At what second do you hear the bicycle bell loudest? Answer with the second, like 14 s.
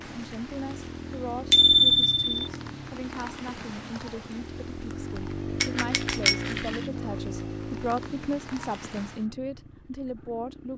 2 s.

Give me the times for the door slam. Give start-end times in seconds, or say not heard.
not heard.